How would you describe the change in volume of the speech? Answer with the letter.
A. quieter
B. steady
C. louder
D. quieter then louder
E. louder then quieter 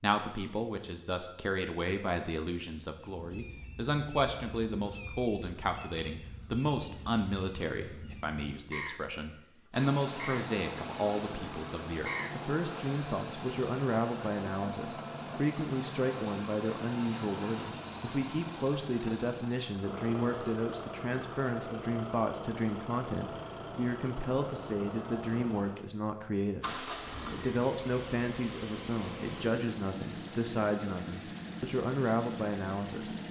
B.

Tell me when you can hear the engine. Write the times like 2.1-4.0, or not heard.
9.7-33.2.